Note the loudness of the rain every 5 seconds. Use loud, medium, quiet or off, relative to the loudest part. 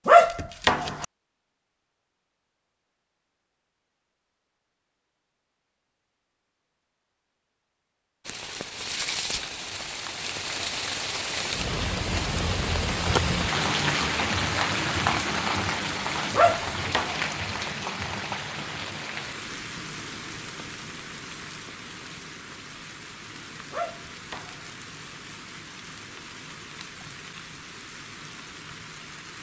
off, medium, loud, loud, quiet, quiet.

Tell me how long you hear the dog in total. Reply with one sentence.
The dog can be heard for 3 seconds in total.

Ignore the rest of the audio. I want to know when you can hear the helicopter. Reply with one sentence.
You can't hear the helicopter here.